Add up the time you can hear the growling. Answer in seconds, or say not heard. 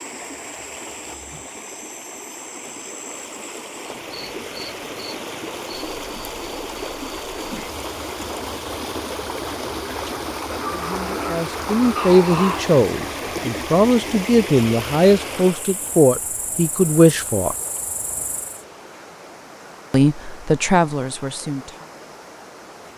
2 s.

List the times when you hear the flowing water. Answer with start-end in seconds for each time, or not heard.
0.0-22.9.